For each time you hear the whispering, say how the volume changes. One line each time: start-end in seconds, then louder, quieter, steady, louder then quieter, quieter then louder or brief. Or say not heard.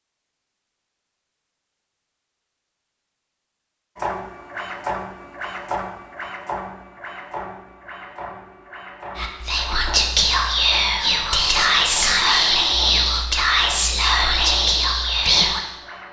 9.2-15.7 steady.